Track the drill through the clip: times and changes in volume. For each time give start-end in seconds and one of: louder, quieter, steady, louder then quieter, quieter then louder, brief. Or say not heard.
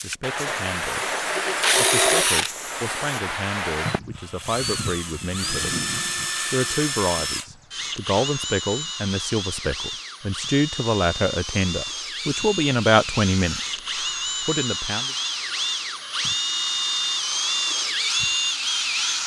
0.0-19.2 quieter then louder.